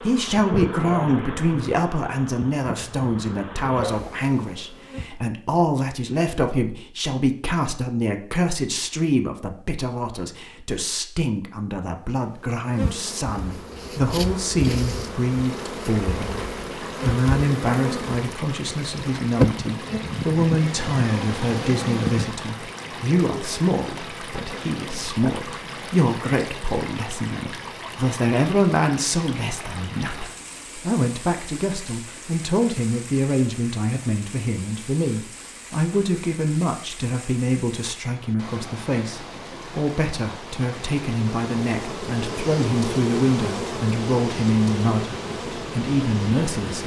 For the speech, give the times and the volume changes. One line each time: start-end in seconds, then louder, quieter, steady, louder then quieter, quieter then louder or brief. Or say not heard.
0.0-46.8 steady.